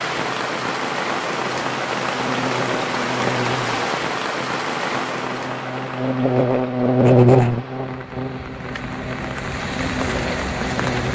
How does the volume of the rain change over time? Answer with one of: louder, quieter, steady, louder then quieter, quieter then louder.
quieter then louder.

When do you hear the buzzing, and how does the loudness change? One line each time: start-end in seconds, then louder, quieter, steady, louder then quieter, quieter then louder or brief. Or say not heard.
0.2-11.1 louder then quieter.